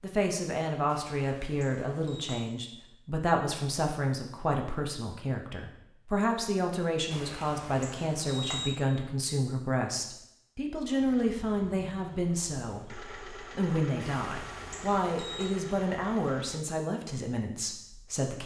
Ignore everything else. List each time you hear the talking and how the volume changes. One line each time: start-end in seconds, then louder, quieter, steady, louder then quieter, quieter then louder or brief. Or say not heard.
0.0-18.4 steady.